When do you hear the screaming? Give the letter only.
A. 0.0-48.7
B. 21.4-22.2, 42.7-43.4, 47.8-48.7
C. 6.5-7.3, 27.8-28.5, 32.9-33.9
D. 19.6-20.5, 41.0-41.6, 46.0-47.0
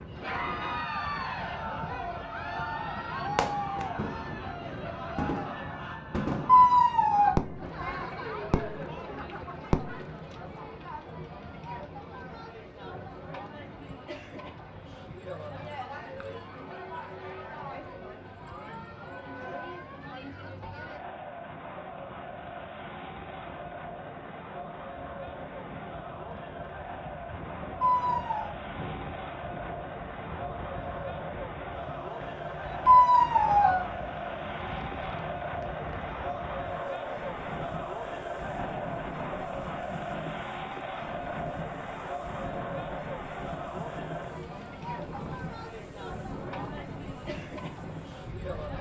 C.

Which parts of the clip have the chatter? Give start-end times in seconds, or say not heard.
0.0-48.7.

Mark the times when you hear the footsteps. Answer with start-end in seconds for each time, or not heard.
not heard.